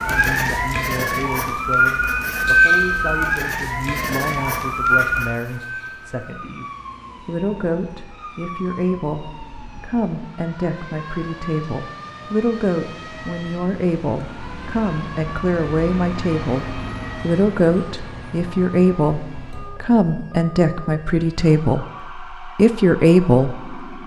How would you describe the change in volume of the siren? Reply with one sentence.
The volume of the siren goes down.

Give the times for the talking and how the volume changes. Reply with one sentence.
You can hear the talking from 0.0 to 24.0 s, getting louder.